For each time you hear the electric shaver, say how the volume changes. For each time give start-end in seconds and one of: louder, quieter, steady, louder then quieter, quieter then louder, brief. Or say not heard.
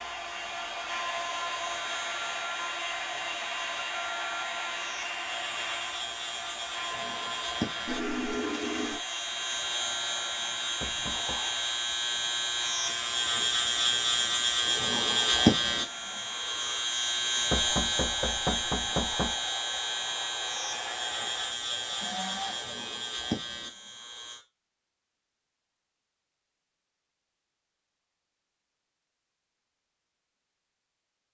0.0-24.4 louder then quieter.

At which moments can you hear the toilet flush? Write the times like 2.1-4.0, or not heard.
7.8-9.0.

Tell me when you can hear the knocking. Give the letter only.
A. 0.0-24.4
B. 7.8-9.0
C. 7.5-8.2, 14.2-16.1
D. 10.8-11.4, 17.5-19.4
D.